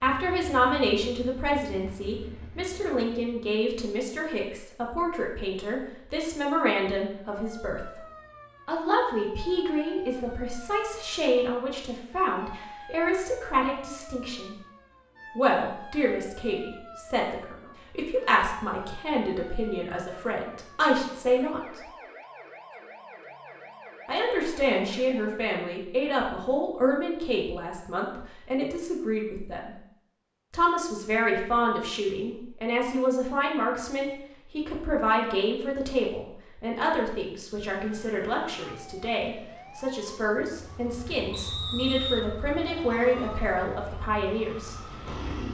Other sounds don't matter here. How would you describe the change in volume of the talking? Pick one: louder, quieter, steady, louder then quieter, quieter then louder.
steady.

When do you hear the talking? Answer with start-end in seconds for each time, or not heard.
0.0-8.0, 8.7-14.6, 15.3-21.8, 24.1-29.8, 30.5-44.8.